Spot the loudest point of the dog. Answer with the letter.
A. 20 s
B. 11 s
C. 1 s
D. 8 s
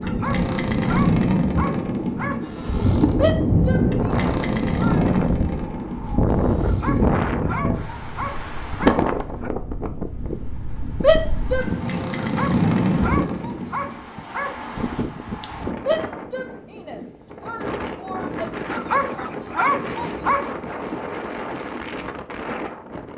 A.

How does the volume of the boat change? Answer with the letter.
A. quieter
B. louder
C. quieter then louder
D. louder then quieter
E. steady
C.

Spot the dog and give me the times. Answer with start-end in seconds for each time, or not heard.
0.0-2.5, 6.6-9.5, 12.2-14.7, 18.7-20.6.